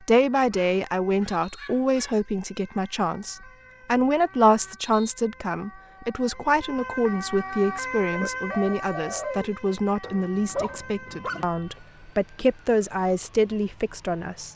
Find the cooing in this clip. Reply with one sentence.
The cooing can be heard from 8.1 to 9.5 s.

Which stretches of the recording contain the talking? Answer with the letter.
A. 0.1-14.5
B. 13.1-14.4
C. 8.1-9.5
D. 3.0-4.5
A.